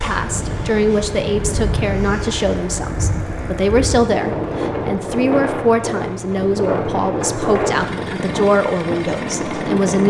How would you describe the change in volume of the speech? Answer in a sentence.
The volume of the speech stays about the same.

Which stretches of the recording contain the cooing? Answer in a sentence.
The cooing can't be heard in this clip.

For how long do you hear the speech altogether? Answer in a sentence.
You can hear the speech for 10 seconds altogether.